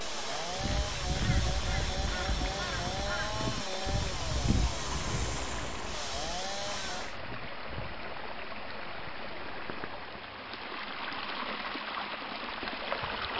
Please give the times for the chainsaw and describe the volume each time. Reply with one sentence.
You can hear the chainsaw from 0.0 to 7.2 s, at a steady volume.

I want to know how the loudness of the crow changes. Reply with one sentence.
The volume of the crow goes down.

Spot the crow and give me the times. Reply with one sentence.
The crow can be heard from 0.5 to 8.1 s.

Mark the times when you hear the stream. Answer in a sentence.
You can hear the stream from 0.0 to 13.3 s.